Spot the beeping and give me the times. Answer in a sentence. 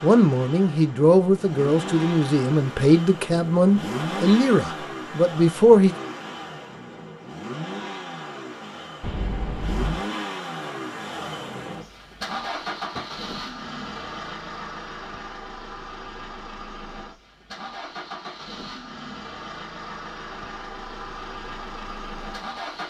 You can hear the beeping from 9.0 to 10.1 s.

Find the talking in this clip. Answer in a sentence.
You can hear the talking from 0.0 to 5.9 s.